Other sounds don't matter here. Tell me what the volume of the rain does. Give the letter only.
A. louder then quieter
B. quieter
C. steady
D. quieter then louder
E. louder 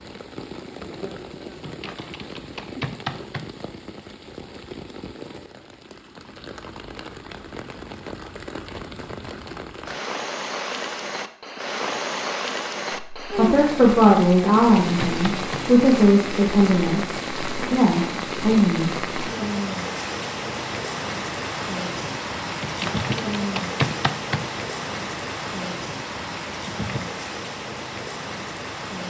E.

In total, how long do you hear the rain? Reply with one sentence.
The rain can be heard for 29 seconds in total.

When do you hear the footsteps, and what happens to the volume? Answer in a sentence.
The footsteps can't be heard in this clip.